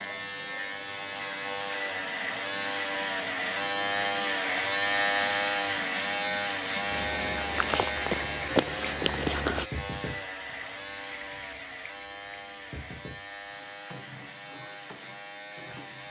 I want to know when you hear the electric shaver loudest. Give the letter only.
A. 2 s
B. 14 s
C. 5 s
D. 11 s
C.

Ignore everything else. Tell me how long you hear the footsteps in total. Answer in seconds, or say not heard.
3 s.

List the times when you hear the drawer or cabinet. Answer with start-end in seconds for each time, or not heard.
not heard.